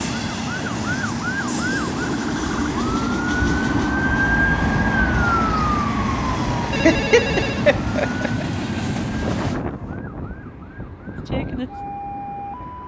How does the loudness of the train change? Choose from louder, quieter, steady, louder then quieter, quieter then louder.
quieter.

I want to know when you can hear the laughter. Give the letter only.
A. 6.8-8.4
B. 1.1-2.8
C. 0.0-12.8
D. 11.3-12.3
A.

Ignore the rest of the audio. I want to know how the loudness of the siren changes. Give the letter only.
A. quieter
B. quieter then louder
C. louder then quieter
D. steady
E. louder
C.